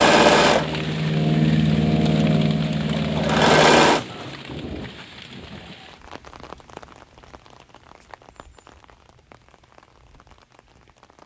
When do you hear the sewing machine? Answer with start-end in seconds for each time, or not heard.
0.0-4.3.